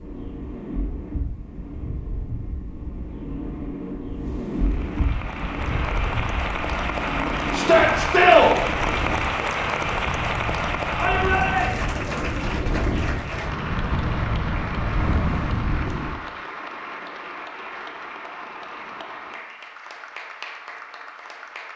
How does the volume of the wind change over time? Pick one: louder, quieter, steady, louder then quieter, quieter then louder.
louder.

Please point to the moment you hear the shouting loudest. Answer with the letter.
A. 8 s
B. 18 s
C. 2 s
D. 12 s
A.